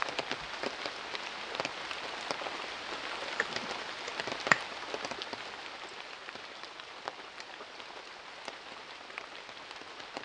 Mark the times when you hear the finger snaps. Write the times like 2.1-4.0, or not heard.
3.4-4.7.